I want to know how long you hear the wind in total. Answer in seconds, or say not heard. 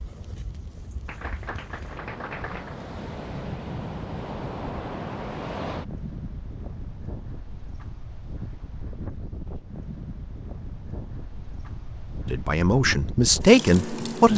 14 s.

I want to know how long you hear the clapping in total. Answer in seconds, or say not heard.
2 s.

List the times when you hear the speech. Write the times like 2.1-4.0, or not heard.
12.2-14.3.